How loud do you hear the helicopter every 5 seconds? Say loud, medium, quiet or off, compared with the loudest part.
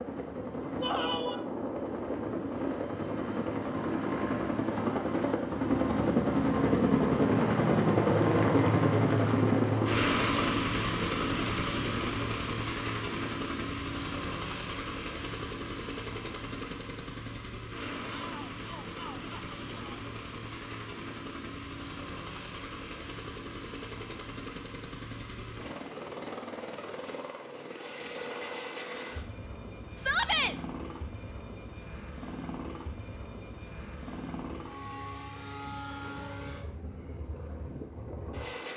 medium, loud, medium, quiet, quiet, quiet, quiet, quiet.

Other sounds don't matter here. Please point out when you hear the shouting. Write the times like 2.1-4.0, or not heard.
0.8-1.4, 18.1-20.0, 29.9-30.6.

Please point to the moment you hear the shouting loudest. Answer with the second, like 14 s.
30 s.